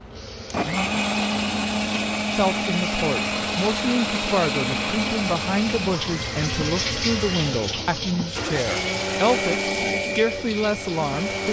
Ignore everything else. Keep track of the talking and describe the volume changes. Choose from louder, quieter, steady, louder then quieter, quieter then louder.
steady.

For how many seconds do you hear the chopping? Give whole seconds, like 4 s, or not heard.
not heard.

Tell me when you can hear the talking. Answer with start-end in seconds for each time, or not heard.
2.3-11.4.